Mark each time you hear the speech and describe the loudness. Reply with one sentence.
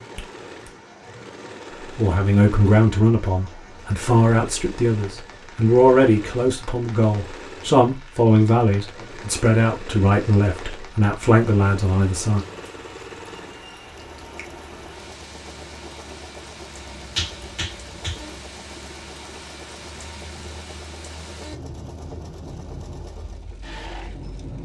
The speech can be heard from 1.9 to 12.4 s, at a steady volume.